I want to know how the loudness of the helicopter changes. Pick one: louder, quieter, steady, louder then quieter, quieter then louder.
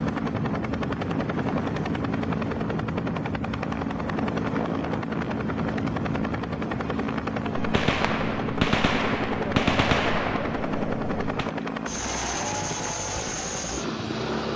steady.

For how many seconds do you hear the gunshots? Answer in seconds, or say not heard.
4 s.